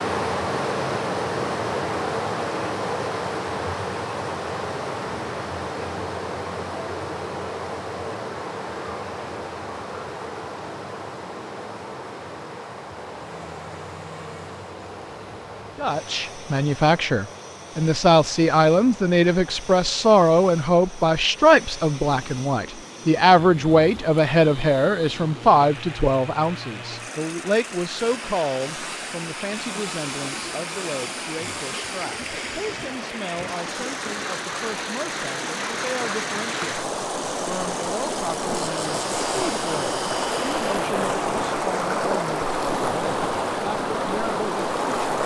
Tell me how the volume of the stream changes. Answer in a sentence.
The volume of the stream goes down, then up.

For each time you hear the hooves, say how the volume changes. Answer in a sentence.
The hooves can't be heard in this clip.